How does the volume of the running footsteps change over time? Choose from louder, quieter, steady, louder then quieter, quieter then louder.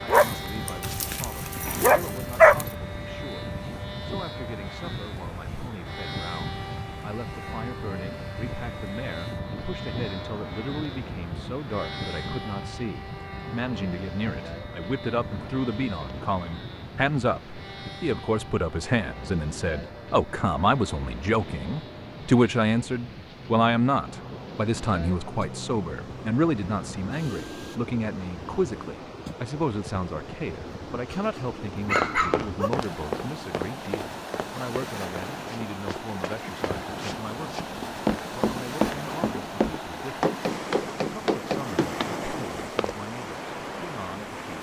quieter then louder.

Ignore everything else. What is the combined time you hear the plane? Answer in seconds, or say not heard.
28 s.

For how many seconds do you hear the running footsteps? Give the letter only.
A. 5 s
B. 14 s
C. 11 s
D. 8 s
C.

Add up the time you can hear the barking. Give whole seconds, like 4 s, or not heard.
4 s.